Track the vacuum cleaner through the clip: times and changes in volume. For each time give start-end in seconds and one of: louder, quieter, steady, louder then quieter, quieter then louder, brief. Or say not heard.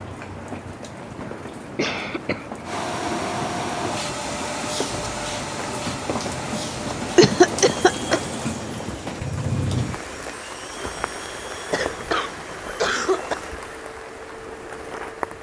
2.6-15.3 quieter.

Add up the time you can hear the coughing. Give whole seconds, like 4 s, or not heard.
4 s.